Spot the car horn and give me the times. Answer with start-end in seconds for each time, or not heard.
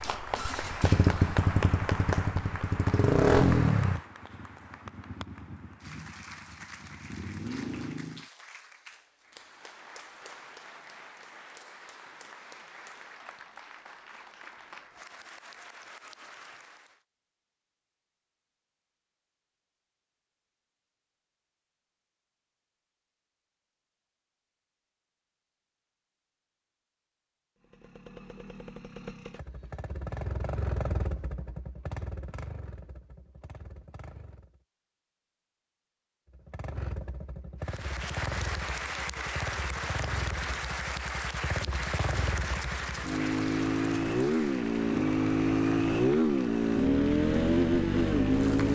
not heard.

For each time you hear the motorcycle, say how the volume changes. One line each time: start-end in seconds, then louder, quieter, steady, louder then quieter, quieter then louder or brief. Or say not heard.
0.0-8.2 quieter then louder
27.6-34.6 louder then quieter
36.3-48.7 louder.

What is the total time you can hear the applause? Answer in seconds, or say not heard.
28 s.